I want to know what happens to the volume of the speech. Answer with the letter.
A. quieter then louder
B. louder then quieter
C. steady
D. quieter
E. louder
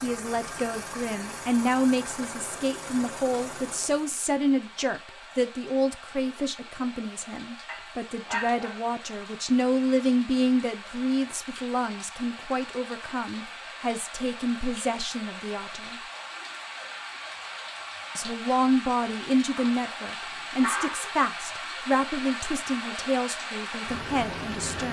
C.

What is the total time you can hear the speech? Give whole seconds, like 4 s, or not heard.
23 s.